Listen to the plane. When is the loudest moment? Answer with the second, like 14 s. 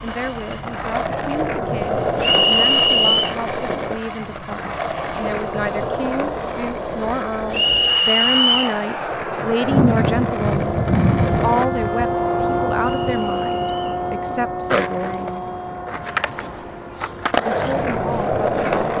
11 s.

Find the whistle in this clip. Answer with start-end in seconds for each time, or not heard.
2.2-3.4, 7.5-8.8, 13.1-14.1.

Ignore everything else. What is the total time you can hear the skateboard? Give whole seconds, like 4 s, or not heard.
16 s.